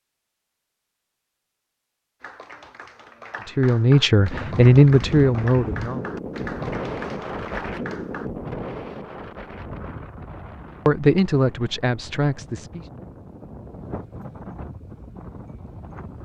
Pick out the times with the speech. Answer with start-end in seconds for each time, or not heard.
3.5-6.0, 10.8-12.8.